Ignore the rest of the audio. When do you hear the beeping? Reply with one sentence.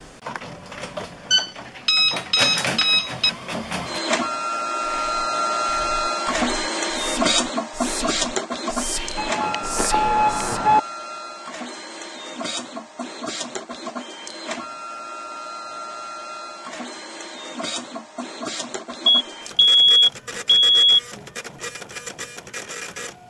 You can hear the beeping from 1.3 to 3.3 s, from 9.2 to 10.8 s and from 19.1 to 20.9 s.